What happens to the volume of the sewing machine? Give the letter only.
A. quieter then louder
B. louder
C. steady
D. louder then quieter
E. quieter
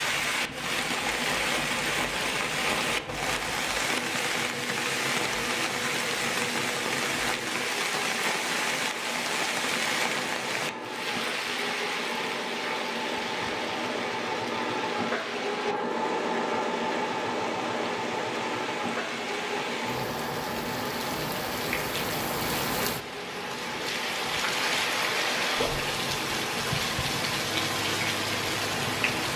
D.